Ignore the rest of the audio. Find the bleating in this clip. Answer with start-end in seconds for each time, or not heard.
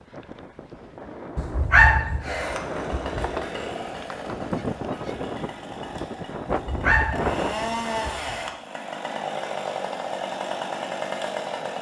not heard.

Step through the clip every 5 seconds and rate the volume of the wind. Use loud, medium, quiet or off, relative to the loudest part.
loud, loud, off.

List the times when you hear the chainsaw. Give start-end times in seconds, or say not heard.
2.2-11.7.